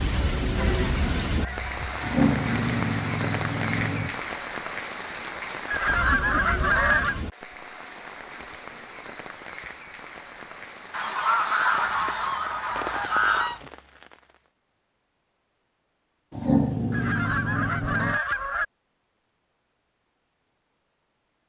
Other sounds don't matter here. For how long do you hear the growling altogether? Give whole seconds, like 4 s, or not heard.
4 s.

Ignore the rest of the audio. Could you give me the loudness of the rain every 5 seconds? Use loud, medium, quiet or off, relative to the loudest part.
loud, medium, medium, off, off.